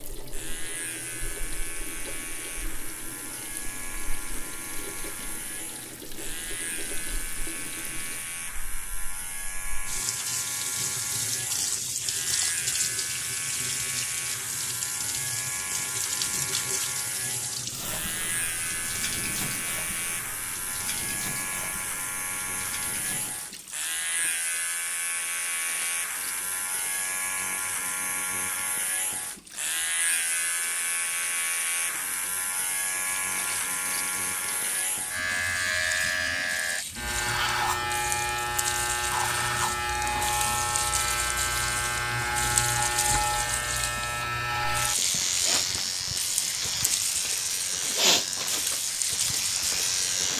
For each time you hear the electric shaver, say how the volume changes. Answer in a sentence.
You can hear the electric shaver from 0.1 to 50.3 s, getting louder.